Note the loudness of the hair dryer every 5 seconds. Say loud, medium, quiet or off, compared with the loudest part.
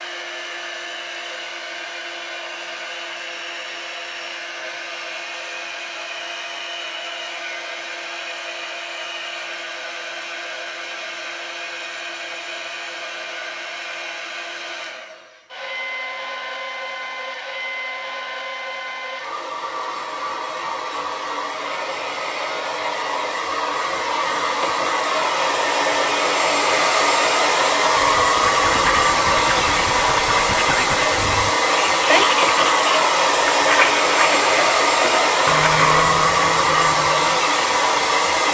quiet, quiet, quiet, quiet, medium, loud, loud, loud.